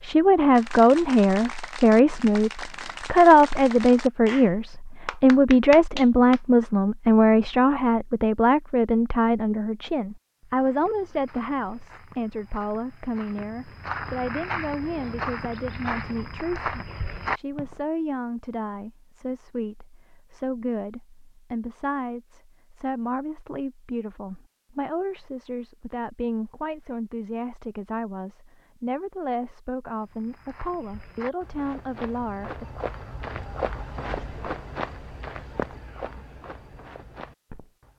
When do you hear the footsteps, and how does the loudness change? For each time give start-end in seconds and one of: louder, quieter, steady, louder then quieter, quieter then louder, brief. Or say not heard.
10.4-17.8 louder
29.9-37.9 louder then quieter.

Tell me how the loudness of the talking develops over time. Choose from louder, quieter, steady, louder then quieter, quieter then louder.
quieter.